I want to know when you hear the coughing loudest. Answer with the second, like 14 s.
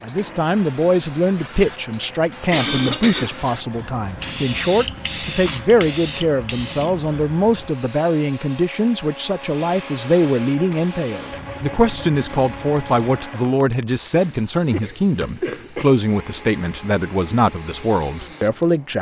3 s.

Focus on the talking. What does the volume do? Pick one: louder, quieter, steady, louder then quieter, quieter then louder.
steady.